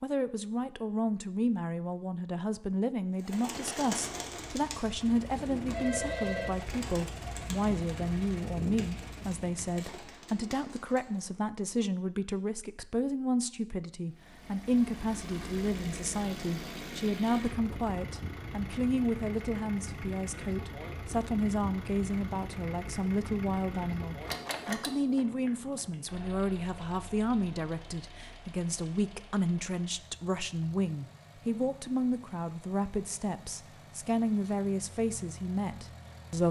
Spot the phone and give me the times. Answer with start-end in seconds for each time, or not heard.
5.3-6.5, 25.4-26.2.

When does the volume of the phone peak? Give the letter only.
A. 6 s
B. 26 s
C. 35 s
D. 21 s
A.